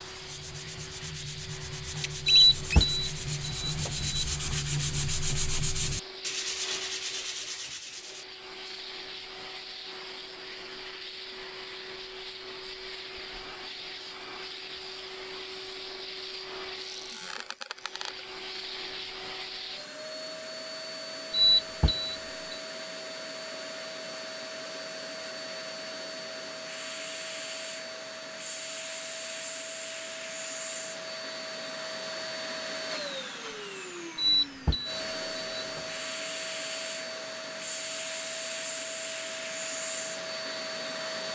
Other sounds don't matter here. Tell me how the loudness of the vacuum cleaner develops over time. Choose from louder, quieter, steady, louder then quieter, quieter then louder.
louder.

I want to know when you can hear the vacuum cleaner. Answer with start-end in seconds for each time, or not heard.
0.0-41.3.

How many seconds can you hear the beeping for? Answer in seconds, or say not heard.
5 s.